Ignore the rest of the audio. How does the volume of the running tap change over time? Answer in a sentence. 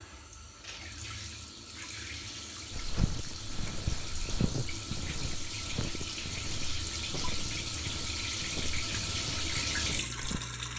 The loudness of the running tap goes up.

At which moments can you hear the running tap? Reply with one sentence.
The running tap can be heard from 0.0 to 10.7 s.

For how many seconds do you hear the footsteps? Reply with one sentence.
You can hear the footsteps for 8 seconds altogether.